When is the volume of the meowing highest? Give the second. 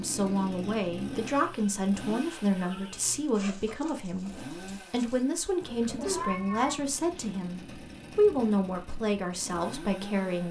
6 s.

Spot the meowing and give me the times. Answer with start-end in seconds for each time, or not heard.
2.5-3.0, 6.0-6.8.